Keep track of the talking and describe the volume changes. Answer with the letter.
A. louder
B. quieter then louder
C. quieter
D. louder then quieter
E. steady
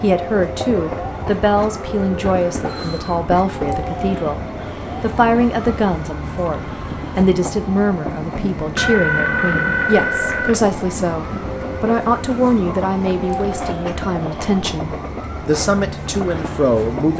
E.